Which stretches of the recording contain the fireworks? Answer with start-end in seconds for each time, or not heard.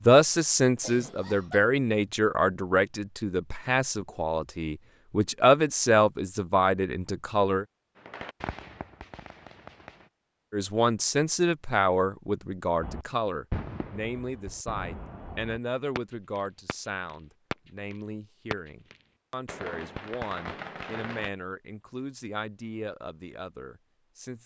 8.0-10.1, 12.8-21.3.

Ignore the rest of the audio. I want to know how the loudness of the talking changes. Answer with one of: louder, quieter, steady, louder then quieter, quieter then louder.
quieter.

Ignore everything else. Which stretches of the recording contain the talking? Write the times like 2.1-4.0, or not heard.
0.0-7.7, 10.5-24.4.